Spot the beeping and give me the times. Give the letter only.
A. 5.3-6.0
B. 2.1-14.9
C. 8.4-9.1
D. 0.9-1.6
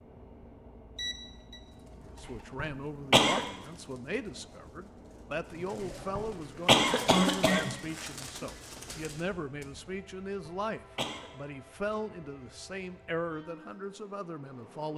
D.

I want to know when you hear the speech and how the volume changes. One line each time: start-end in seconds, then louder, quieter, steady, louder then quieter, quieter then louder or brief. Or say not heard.
2.1-14.9 steady.